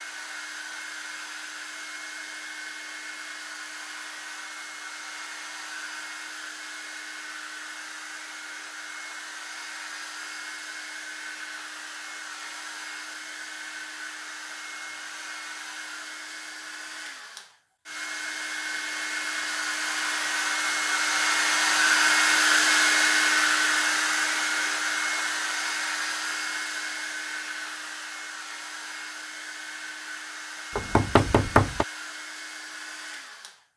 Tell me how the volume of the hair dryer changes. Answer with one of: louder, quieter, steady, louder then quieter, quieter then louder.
louder then quieter.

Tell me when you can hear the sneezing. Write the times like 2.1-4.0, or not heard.
not heard.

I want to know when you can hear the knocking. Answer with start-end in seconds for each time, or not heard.
30.8-31.9.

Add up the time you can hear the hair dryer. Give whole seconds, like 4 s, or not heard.
34 s.